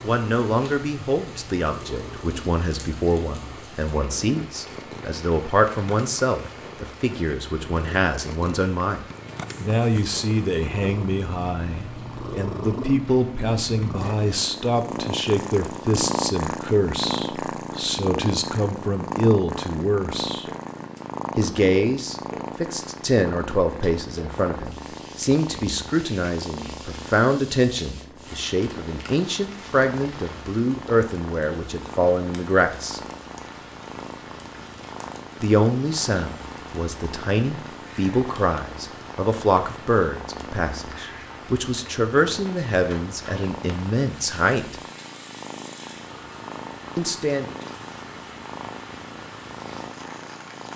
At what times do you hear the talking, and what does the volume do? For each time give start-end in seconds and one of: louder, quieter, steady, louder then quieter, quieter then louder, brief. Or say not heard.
0.0-20.4 steady
21.4-33.0 steady
35.4-44.8 steady
47.0-47.5 brief.